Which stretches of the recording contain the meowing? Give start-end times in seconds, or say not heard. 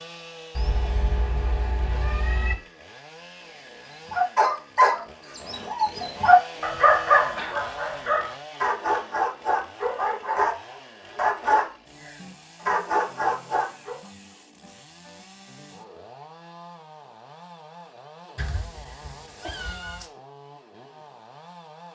0.6-2.5, 18.4-20.1.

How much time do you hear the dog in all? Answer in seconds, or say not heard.
10 s.